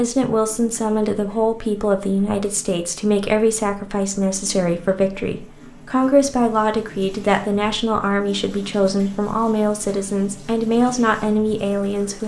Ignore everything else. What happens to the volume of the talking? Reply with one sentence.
The volume of the talking stays about the same.